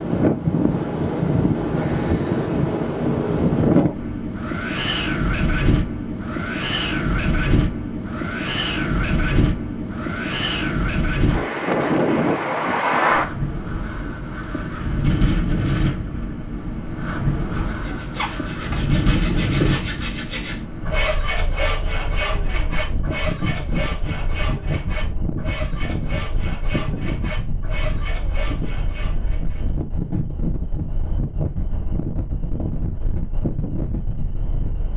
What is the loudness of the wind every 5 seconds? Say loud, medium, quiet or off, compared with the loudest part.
loud, loud, loud, loud, medium, medium, medium.